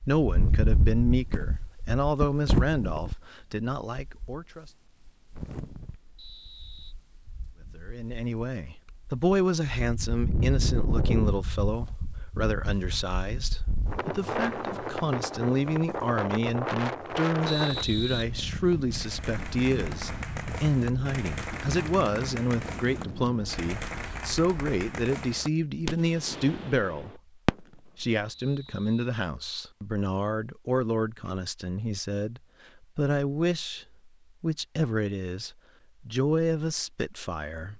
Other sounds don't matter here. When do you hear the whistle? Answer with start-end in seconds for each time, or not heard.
6.2-7.0, 17.4-18.9, 28.4-29.1.